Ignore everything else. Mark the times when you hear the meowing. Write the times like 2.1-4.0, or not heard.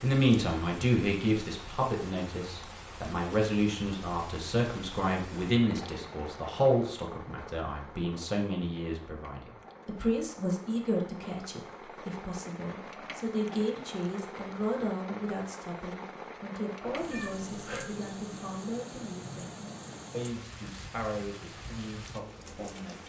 16.8-17.8.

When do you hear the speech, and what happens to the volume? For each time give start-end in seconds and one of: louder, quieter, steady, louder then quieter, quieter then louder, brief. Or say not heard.
0.0-23.0 quieter.